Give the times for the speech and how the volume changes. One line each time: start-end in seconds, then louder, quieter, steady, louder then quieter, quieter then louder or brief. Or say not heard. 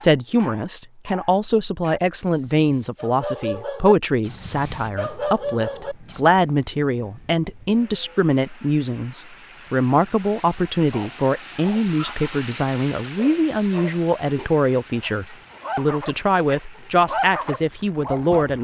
0.0-18.5 steady.